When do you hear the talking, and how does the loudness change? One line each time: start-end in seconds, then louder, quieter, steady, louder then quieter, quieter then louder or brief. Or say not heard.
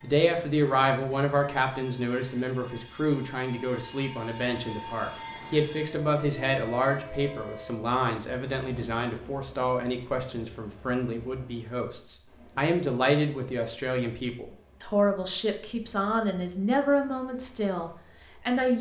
0.0-18.7 steady.